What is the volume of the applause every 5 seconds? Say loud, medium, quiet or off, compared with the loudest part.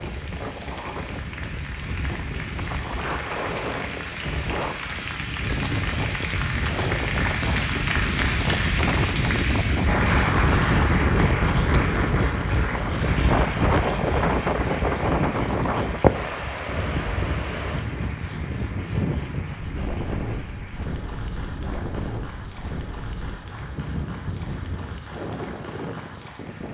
medium, loud, loud, medium, quiet, quiet.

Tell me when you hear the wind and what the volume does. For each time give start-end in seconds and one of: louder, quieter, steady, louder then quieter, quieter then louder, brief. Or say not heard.
0.0-26.6 louder then quieter.